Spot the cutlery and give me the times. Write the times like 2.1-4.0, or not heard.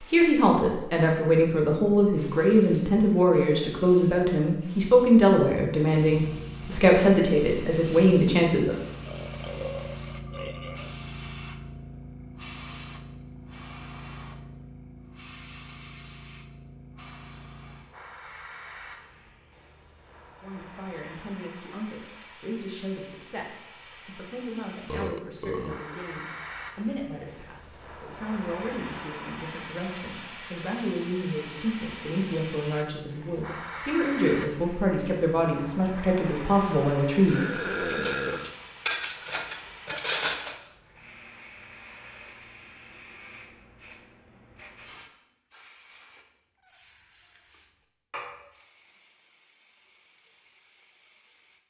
37.9-40.5.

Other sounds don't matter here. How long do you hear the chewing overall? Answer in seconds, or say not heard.
not heard.